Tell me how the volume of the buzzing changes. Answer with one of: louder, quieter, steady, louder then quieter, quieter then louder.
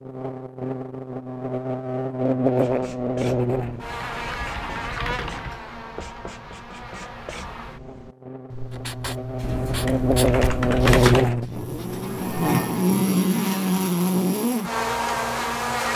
quieter then louder.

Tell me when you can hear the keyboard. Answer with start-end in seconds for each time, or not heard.
3.5-5.6, 9.4-11.3.